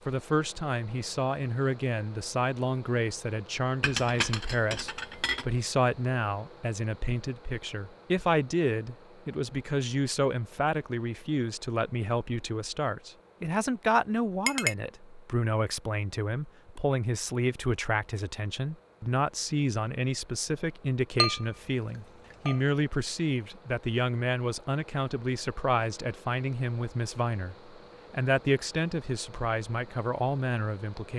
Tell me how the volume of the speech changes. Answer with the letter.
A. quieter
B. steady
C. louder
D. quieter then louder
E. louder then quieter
B.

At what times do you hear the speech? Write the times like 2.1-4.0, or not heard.
0.1-31.1.